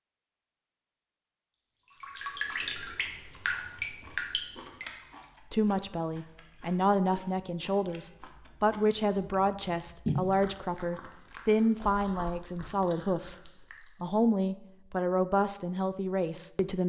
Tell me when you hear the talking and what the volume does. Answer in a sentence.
The talking can be heard from 5.5 to 16.8 s, at a steady volume.